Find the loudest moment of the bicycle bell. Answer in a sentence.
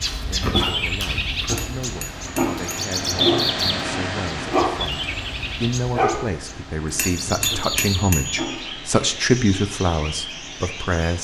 The loudest moment of the bicycle bell is at 8 seconds.